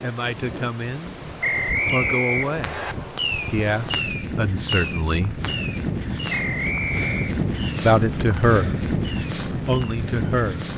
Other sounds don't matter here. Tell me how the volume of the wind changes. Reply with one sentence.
The loudness of the wind goes up.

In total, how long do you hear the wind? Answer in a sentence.
You can hear the wind for 11 seconds altogether.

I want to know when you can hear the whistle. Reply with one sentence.
The whistle can be heard from 1.4 to 3.0 s and from 6.2 to 7.3 s.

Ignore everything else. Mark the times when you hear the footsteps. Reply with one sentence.
You can't hear the footsteps here.